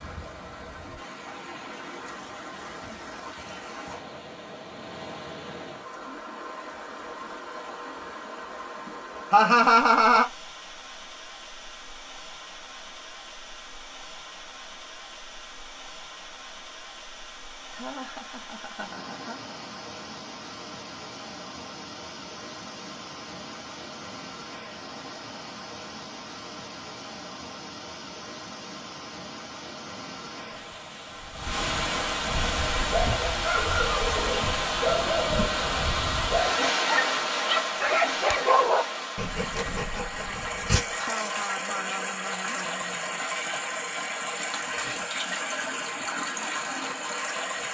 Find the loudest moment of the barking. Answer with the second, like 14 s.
39 s.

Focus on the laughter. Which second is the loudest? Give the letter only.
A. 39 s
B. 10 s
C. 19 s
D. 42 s
B.